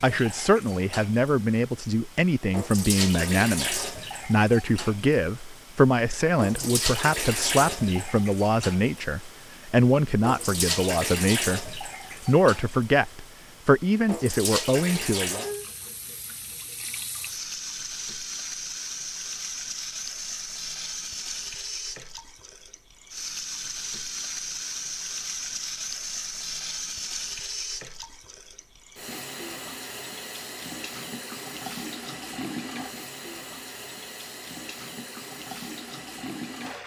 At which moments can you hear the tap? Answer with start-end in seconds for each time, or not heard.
0.0-36.8.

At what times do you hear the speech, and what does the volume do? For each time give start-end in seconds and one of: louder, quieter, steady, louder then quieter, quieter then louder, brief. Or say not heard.
0.0-15.4 steady.